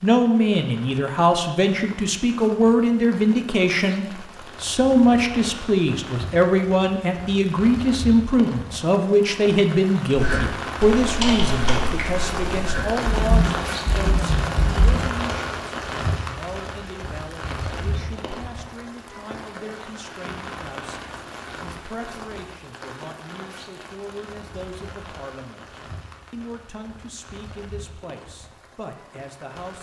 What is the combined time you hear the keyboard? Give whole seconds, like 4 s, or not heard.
5 s.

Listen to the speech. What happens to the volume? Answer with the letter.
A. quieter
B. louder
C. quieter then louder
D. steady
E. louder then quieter
A.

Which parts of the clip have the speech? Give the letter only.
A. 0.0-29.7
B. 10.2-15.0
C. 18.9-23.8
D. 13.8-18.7
A.